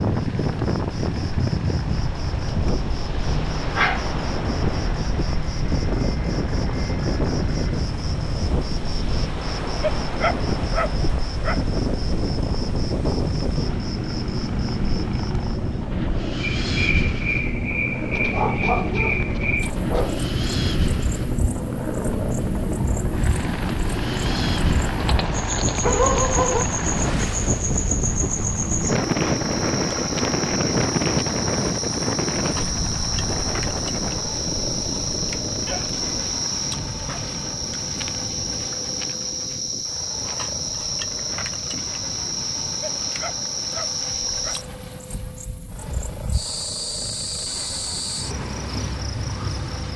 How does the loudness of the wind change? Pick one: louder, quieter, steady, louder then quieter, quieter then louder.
quieter.